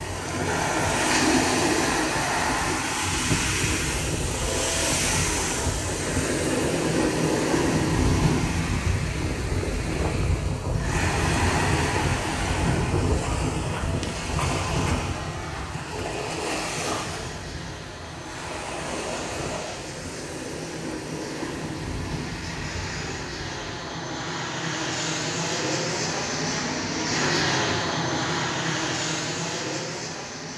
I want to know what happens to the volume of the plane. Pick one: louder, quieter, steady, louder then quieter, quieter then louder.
louder.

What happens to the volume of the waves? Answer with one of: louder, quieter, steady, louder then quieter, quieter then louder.
quieter.